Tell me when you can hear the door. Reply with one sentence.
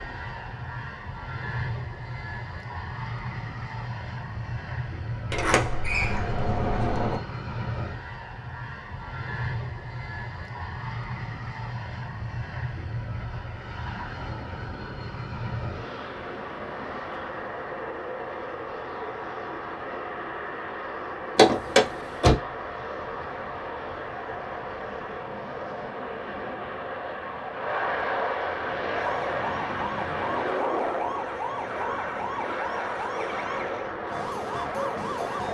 You can hear the door from 5.3 to 7.2 s and from 21.4 to 22.4 s.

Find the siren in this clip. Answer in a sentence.
You can hear the siren from 28.9 to 35.4 s.